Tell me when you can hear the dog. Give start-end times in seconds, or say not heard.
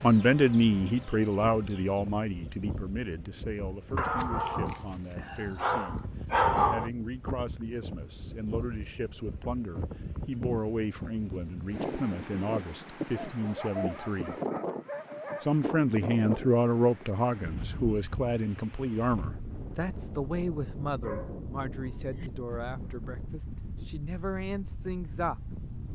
4.0-6.9, 13.1-15.6, 21.0-22.3.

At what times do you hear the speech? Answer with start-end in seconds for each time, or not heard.
0.0-14.3, 15.4-25.6.